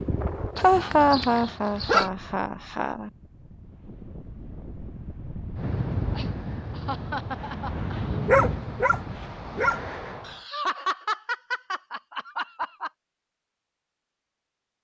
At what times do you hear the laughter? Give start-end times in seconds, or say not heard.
0.6-3.1, 6.2-8.2, 10.2-12.9.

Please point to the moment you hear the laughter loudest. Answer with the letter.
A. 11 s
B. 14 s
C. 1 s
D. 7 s
C.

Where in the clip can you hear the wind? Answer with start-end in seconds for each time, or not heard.
0.0-10.4.